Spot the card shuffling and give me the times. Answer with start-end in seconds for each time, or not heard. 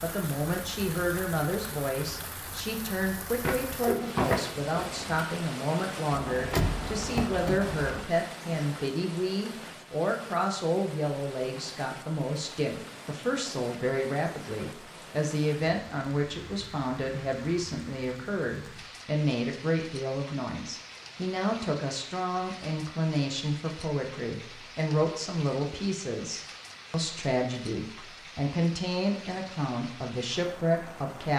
3.4-5.2.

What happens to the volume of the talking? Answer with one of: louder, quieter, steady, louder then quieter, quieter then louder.
steady.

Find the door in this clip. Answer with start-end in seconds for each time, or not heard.
6.1-8.1.